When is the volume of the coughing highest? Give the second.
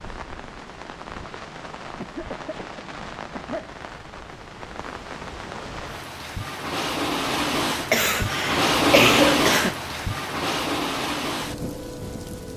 9 s.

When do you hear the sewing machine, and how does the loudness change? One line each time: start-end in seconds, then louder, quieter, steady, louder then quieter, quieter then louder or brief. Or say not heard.
not heard.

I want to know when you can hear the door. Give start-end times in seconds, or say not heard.
not heard.